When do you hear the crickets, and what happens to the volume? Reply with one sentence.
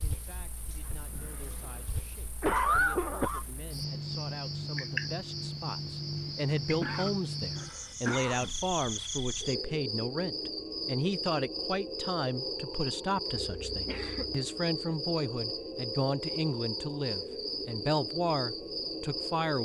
The crickets can be heard from 0.0 to 19.5 s, getting louder.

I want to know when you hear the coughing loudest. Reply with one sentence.
The volume of the coughing peaks at 3 seconds.